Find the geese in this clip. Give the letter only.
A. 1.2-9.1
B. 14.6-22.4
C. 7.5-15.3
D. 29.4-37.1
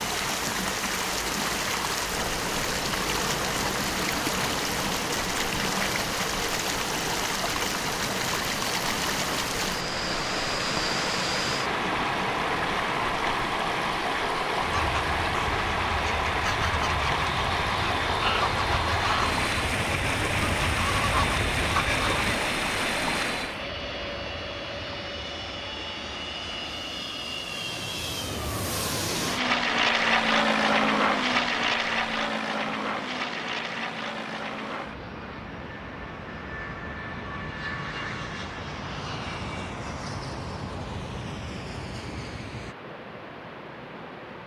B.